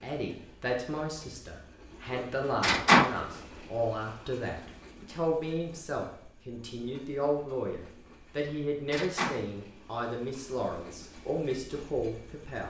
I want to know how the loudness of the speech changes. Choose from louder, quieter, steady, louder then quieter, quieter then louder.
steady.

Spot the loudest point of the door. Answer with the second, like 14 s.
3 s.